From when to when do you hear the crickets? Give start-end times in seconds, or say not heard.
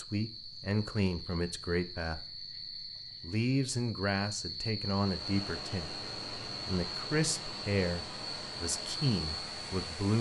0.0-9.8.